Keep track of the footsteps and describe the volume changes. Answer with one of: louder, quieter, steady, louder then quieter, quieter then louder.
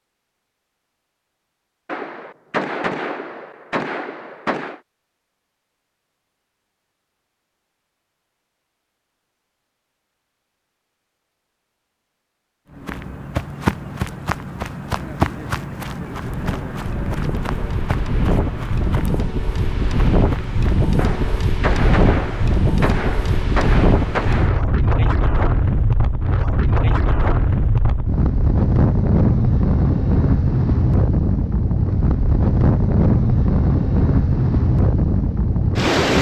quieter.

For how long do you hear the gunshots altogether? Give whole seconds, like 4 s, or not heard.
7 s.